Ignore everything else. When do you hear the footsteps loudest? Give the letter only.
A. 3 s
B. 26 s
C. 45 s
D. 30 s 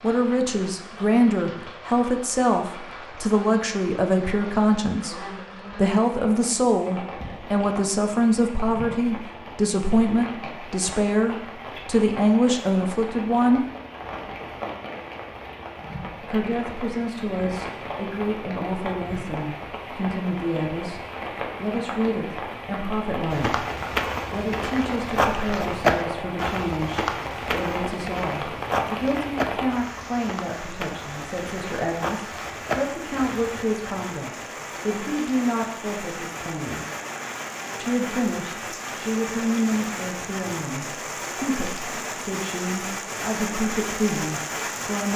B.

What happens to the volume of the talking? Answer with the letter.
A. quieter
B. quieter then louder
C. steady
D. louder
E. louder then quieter
A.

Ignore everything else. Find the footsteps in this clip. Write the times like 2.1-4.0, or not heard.
23.3-33.4.